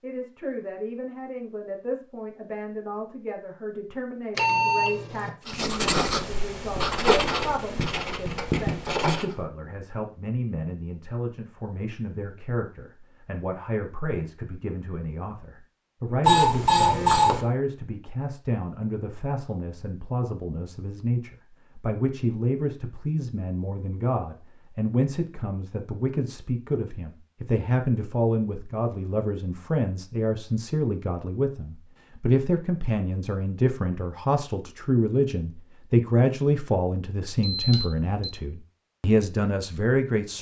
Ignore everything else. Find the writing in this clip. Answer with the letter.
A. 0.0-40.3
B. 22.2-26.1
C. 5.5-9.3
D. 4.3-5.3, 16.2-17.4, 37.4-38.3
C.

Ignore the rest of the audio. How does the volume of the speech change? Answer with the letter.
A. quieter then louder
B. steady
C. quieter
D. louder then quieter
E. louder
E.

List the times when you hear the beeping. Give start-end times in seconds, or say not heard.
4.3-5.3, 16.2-17.4, 37.4-38.3.